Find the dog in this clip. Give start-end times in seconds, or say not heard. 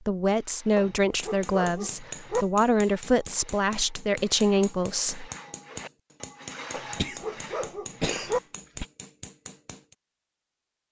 0.8-2.5, 6.7-8.4.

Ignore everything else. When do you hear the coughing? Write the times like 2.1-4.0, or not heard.
7.0-8.8.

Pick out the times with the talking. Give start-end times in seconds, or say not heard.
0.1-5.3.